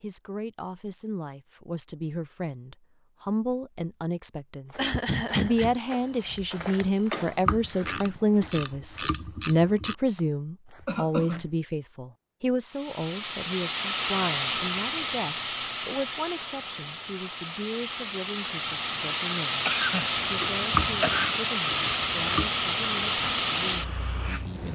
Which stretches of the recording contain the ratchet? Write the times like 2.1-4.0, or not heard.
7.1-9.9, 20.4-22.5.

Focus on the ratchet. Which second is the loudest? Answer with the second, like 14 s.
21 s.